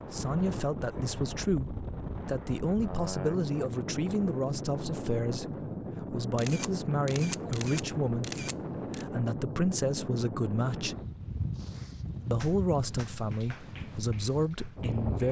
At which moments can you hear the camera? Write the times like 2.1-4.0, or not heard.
6.3-9.1.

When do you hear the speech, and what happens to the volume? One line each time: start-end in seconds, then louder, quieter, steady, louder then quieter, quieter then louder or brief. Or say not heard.
0.1-10.9 steady
12.3-15.2 brief.